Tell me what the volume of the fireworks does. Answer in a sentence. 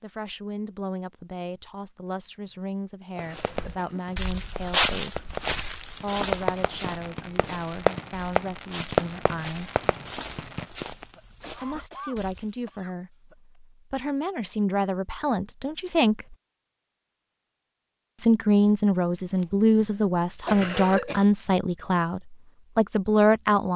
The loudness of the fireworks goes up.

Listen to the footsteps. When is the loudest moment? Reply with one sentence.
The volume of the footsteps peaks at 5 seconds.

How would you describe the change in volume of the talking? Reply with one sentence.
The loudness of the talking goes up.